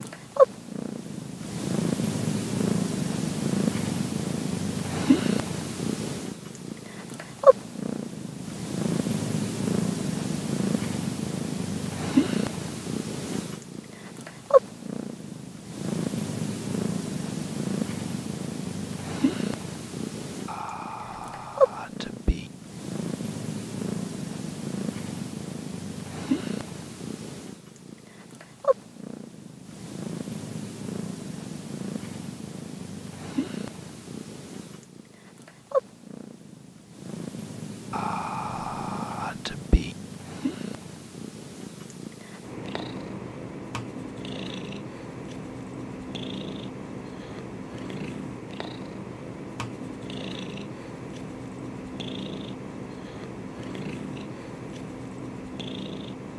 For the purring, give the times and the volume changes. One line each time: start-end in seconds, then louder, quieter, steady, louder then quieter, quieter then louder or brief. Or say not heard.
0.0-56.3 quieter.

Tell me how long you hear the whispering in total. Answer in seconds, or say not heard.
4 s.